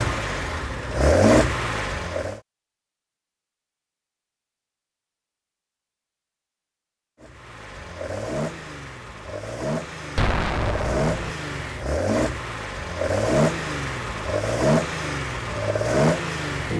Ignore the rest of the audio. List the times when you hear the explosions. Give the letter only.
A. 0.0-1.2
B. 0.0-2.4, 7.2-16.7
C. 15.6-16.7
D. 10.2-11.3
D.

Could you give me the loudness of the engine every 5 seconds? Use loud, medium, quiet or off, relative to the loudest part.
loud, medium, loud, loud.